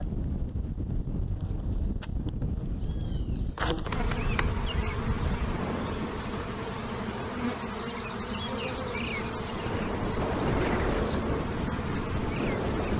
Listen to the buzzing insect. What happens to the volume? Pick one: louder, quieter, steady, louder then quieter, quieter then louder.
louder.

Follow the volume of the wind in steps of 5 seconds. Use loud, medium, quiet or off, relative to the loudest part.
medium, medium, loud.